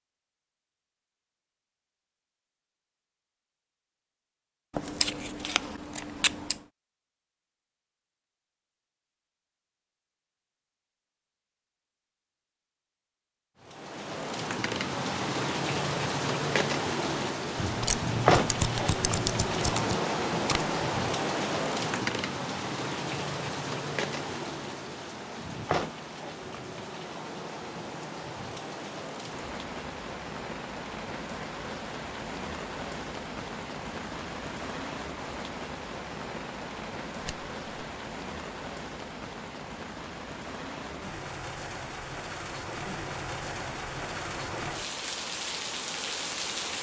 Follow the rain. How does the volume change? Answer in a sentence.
The loudness of the rain goes down.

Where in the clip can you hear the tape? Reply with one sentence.
You can hear the tape from 19.6 to 20.7 s.